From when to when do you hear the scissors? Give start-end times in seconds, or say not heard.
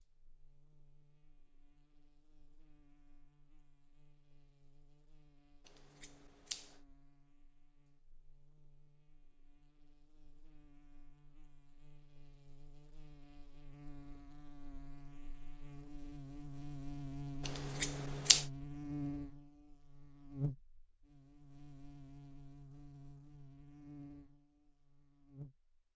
5.7-6.8, 17.4-18.4.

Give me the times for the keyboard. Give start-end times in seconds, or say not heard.
not heard.